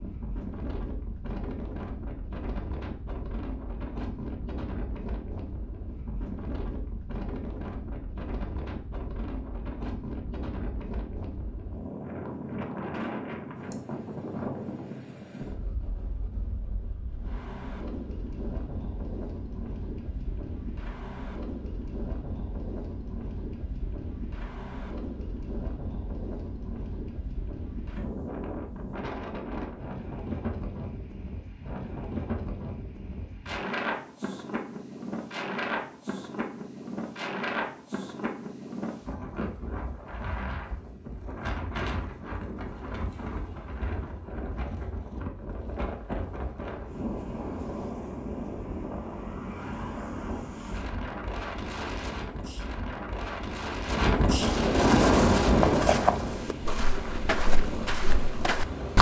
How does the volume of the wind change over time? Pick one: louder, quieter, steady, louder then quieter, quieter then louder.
louder.